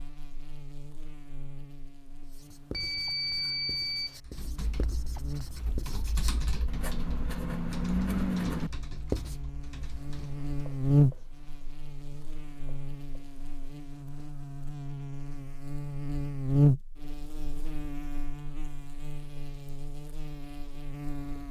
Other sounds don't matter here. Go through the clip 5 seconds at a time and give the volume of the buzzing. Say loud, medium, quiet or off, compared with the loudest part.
quiet, quiet, loud, loud, medium.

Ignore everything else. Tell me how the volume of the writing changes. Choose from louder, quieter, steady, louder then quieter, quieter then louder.
louder then quieter.